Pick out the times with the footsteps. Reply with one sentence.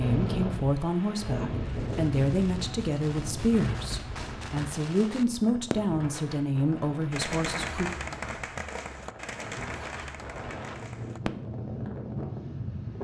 The footsteps can't be heard in this clip.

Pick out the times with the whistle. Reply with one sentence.
You can't hear the whistle here.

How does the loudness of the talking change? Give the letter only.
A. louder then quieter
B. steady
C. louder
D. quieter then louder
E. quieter
B.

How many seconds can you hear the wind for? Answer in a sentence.
The wind can be heard for 13 seconds in total.